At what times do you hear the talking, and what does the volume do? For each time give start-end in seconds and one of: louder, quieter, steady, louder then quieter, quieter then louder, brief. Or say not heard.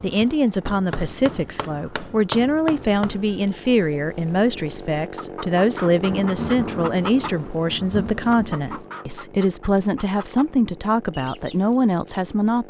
0.0-12.6 steady.